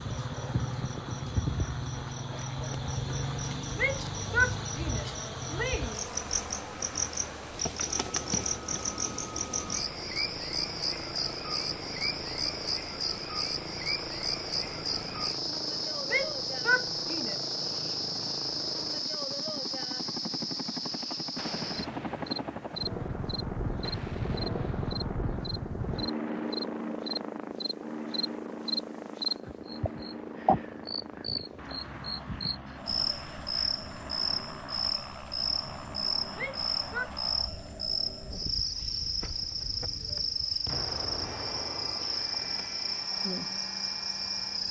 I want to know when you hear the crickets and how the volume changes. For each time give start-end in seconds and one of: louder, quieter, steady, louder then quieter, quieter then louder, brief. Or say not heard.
0.0-44.6 steady.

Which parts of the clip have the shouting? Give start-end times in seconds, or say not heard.
3.8-6.0, 16.1-17.4, 36.4-37.1.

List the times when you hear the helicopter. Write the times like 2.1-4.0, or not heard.
0.0-44.6.